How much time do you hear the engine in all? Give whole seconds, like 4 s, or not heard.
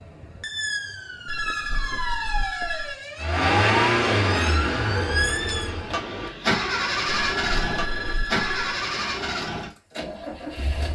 8 s.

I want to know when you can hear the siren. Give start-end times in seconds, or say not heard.
0.0-5.8.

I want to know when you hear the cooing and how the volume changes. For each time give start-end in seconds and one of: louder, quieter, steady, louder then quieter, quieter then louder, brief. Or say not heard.
not heard.